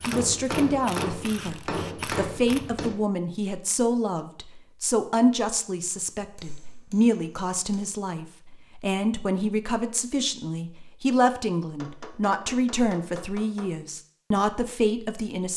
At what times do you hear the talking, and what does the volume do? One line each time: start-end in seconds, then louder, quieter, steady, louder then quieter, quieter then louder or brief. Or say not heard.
0.1-15.5 steady.